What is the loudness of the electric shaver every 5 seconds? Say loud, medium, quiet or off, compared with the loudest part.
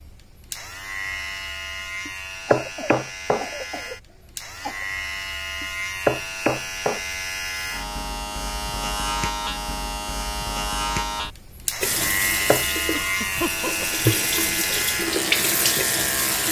medium, loud, loud, loud.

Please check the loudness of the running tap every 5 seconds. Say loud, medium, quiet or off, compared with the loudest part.
off, off, loud, loud.